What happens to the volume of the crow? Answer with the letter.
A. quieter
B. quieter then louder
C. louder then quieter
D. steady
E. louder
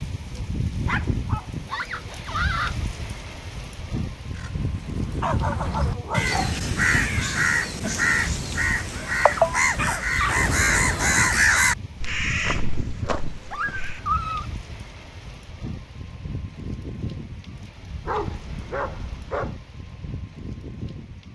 C.